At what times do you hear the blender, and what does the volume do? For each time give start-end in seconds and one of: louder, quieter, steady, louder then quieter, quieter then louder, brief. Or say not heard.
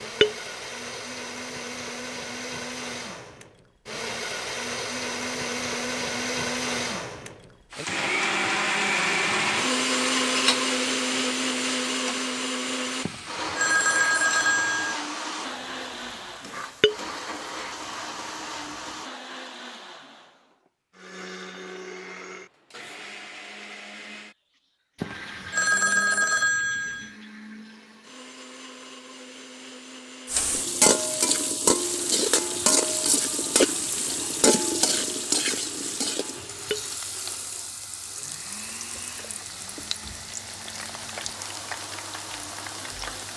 0.0-43.3 quieter.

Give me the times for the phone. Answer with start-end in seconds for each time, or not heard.
13.1-14.9, 25.0-27.1.